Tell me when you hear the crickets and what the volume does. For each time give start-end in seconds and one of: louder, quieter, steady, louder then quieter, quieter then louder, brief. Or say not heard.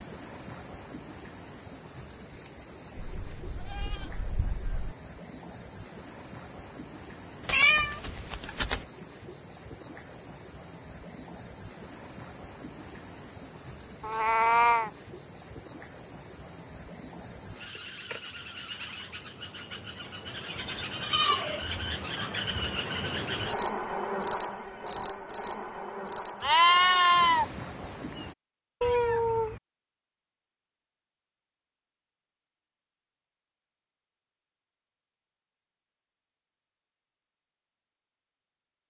0.0-28.4 louder.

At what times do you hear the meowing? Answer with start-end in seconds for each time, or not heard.
7.5-8.8, 14.0-14.9, 28.8-29.6.